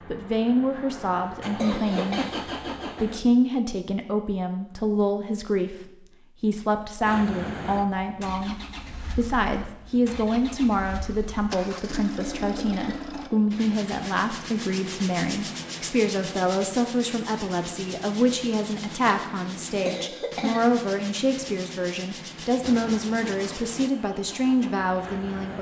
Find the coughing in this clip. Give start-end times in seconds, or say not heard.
1.6-2.2, 12.2-13.4, 19.9-20.6.